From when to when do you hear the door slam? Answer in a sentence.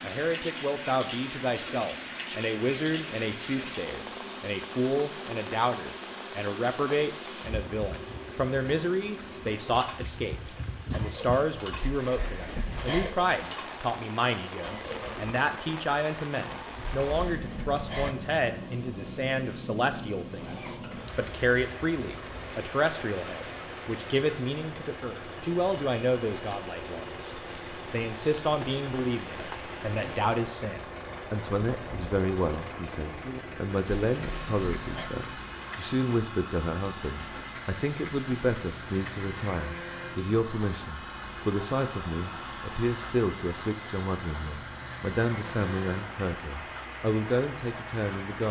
The door slam can be heard from 11.8 to 13.2 s, from 17.1 to 18.1 s and from 34.0 to 35.1 s.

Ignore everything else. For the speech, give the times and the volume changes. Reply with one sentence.
The speech can be heard from 0.0 to 48.4 s, at a steady volume.